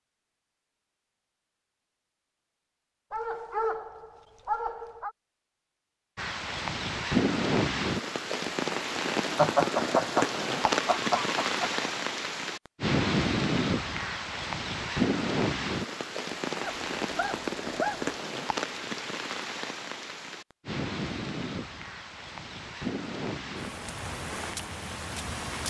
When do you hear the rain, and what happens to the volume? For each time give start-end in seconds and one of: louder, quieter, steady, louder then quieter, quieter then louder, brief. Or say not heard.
6.2-25.6 quieter.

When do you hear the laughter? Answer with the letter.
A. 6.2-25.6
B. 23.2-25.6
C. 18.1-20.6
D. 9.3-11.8
D.